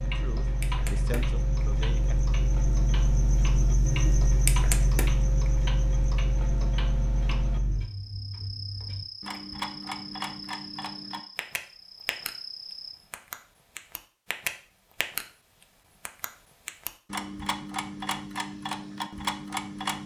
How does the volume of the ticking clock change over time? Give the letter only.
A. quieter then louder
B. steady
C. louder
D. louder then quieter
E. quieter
C.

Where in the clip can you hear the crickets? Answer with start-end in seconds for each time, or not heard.
0.0-12.9.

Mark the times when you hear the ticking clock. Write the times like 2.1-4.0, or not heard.
0.0-20.0.